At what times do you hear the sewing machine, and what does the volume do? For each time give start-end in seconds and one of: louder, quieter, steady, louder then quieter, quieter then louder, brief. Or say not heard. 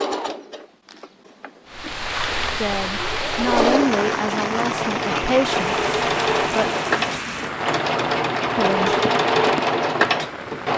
0.0-10.7 louder.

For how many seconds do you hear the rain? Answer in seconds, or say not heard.
9 s.